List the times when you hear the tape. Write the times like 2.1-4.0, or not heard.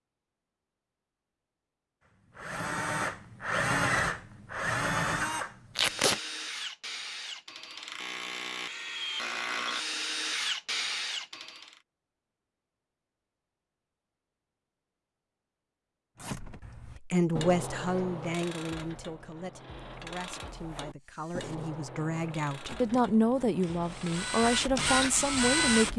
5.8-6.2.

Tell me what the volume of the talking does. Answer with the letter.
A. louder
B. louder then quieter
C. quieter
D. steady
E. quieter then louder
E.